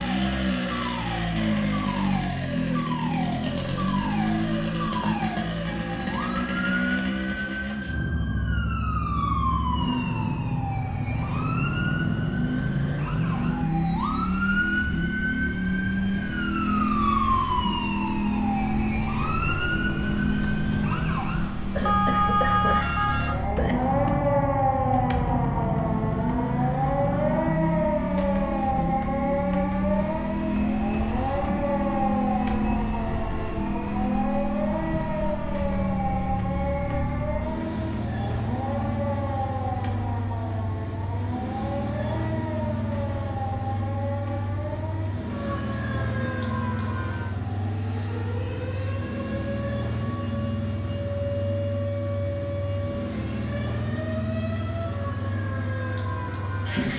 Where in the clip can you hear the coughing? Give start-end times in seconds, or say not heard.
21.8-23.8.